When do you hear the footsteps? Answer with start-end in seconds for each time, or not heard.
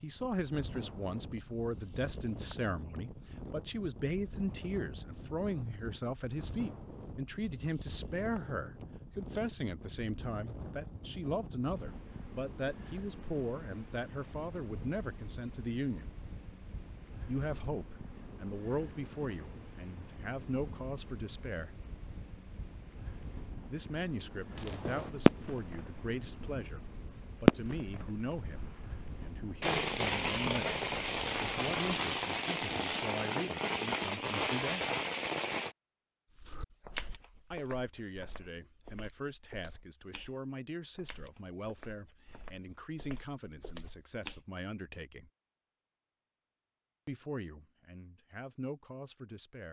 36.4-44.5.